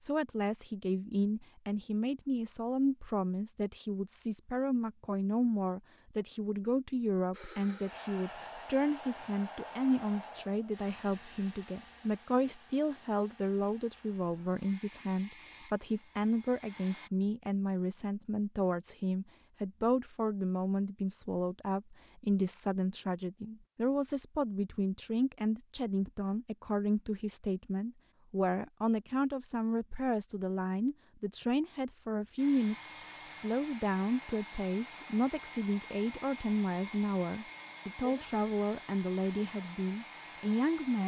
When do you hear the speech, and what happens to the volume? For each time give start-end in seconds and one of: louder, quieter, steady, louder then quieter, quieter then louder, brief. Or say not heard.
0.0-41.0 steady.